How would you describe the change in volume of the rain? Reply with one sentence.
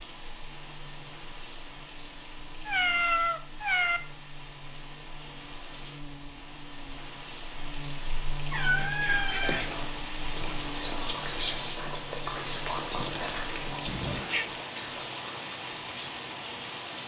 The volume of the rain goes up.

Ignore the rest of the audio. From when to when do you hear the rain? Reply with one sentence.
The rain can be heard from 0.0 to 17.0 s.